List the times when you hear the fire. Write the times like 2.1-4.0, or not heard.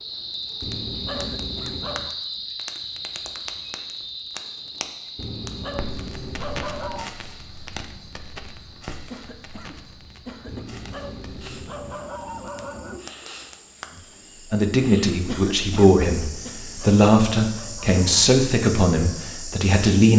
0.0-14.0.